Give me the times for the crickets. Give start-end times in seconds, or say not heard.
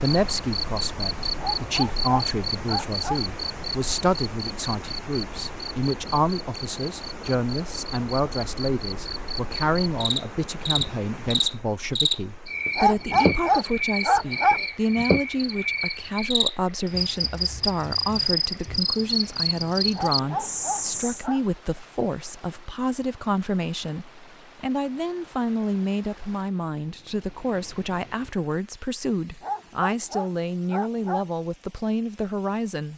0.0-21.2.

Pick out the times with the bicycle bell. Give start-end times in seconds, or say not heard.
not heard.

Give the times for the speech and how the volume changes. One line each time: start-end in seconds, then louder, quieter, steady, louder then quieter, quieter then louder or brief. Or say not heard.
0.0-32.9 steady.